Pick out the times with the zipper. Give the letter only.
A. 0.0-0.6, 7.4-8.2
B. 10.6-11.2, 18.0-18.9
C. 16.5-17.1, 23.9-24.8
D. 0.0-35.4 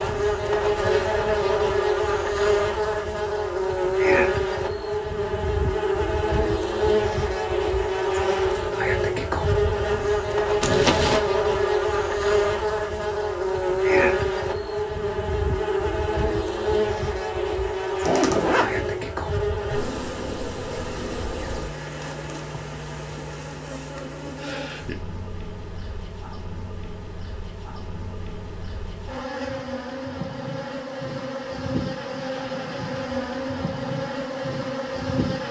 B.